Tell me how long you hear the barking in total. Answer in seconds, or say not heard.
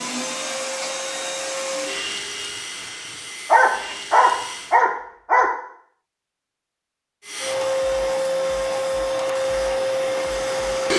2 s.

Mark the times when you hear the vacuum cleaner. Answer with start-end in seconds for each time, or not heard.
0.0-4.8, 7.2-10.9.